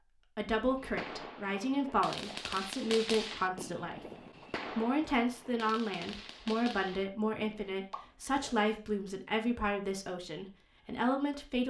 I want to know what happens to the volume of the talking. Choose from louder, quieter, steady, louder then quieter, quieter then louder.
steady.